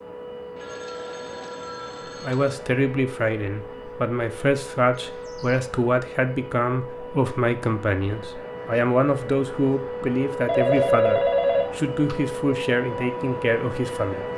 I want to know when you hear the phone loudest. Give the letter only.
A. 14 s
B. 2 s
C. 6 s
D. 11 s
D.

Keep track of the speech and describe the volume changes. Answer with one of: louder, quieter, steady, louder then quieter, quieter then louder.
steady.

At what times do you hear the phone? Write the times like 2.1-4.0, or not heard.
0.6-2.5, 5.0-5.6, 10.4-12.2.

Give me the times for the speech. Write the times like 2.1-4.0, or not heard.
2.2-14.3.